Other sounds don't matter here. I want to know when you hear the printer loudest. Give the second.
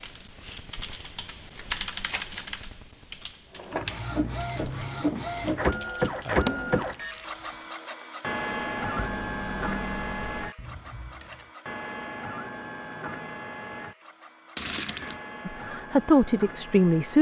6 s.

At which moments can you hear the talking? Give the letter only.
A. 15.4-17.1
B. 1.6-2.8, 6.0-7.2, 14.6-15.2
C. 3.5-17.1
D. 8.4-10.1
A.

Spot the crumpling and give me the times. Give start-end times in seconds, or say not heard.
1.6-2.8, 6.0-7.2, 14.6-15.2.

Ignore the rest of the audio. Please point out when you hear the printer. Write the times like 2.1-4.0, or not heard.
3.5-17.1.